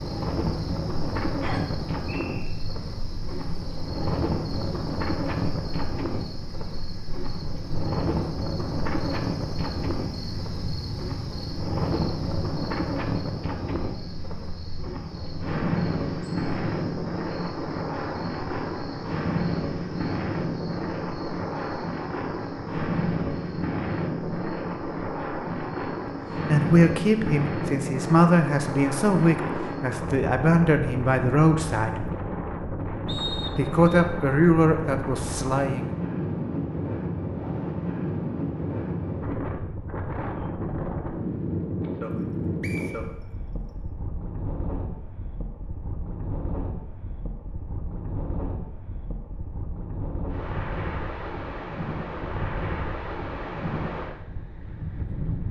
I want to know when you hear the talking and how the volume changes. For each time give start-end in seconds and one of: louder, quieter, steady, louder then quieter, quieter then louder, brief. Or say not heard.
26.4-32.1 steady
33.5-35.9 brief.